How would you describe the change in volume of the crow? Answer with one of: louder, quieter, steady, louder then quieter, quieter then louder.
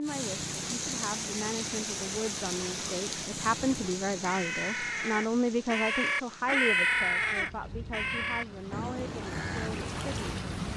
louder then quieter.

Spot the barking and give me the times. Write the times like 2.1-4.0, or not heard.
not heard.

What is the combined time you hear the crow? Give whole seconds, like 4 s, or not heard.
6 s.